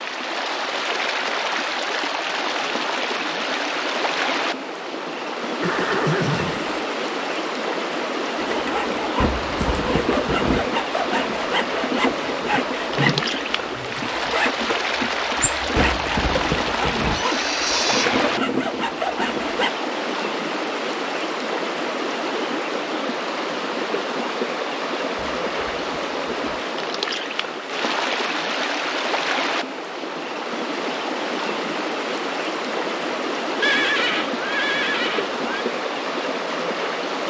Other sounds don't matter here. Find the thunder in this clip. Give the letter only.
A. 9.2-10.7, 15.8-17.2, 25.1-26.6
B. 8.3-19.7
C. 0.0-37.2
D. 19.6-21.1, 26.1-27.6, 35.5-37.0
A.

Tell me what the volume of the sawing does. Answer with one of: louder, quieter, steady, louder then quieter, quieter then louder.
steady.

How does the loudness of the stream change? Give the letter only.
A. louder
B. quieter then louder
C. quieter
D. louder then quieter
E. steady
E.